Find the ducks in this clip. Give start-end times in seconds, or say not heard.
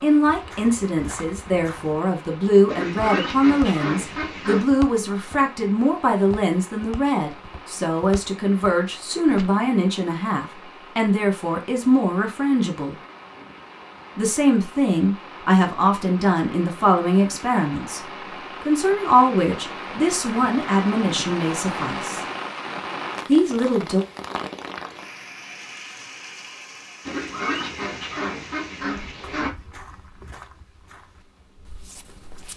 2.6-4.7, 27.1-29.5.